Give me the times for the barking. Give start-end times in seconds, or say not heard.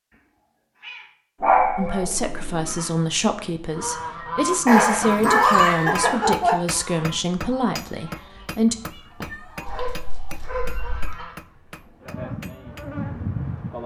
1.4-2.8, 4.7-6.5, 9.7-11.2.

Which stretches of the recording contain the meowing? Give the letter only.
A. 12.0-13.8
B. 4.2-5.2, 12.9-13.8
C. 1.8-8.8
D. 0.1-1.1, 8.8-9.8
D.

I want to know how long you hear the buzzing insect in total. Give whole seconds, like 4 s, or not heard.
2 s.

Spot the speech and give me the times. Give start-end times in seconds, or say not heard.
1.8-8.8.